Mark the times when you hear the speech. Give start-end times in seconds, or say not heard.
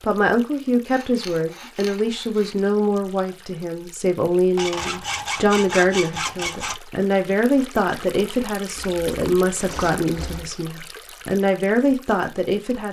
0.0-12.8.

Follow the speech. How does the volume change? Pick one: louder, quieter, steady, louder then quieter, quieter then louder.
steady.